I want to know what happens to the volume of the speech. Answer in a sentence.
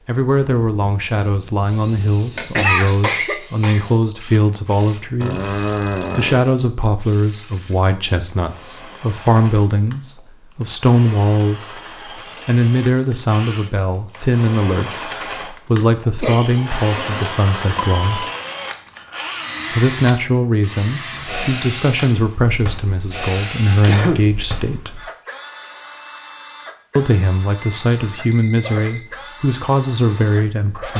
The volume of the speech stays about the same.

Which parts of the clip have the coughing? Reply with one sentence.
The coughing can be heard from 2.4 to 3.9 s, from 16.2 to 17.4 s and from 23.9 to 24.4 s.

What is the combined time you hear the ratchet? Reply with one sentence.
The ratchet can't be heard in this clip.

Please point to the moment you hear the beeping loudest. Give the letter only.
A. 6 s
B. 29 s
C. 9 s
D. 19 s
A.